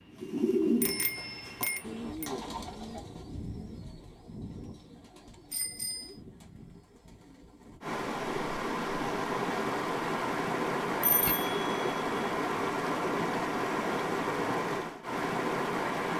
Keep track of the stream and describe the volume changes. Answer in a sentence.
The loudness of the stream stays about the same.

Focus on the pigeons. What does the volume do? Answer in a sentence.
The loudness of the pigeons goes down.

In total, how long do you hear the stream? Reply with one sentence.
You can hear the stream for 8 seconds altogether.